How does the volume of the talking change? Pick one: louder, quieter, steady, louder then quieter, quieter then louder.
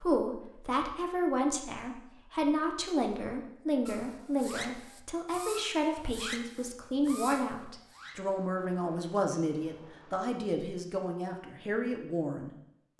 steady.